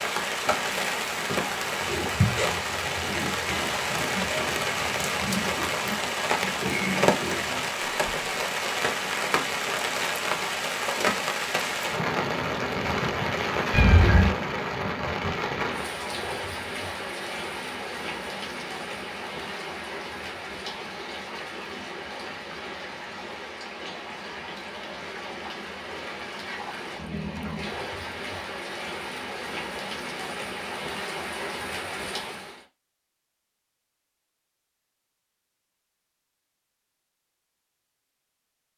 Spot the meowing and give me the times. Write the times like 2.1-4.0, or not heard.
13.7-14.3.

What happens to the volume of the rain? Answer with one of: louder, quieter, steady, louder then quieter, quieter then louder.
quieter.